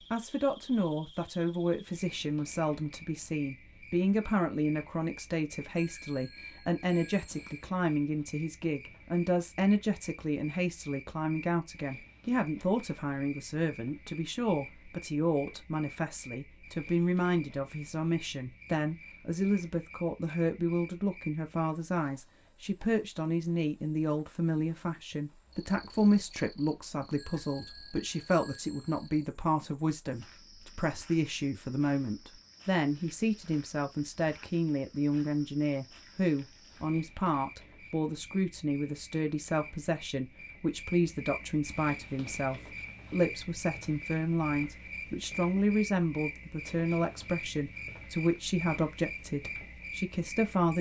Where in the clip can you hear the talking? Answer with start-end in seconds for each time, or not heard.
0.1-50.7.